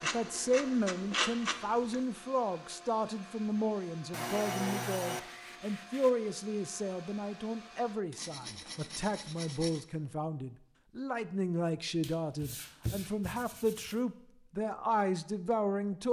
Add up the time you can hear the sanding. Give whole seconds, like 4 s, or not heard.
8 s.